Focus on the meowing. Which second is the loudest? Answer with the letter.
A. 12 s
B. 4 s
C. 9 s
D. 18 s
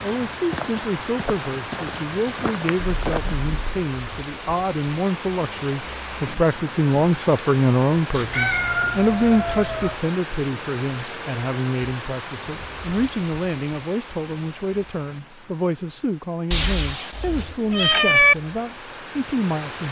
D.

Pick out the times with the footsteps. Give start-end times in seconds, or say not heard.
0.0-3.4.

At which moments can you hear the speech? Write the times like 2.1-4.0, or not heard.
0.0-19.8.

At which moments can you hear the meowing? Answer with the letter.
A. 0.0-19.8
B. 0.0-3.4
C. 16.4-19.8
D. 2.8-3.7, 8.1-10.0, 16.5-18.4
D.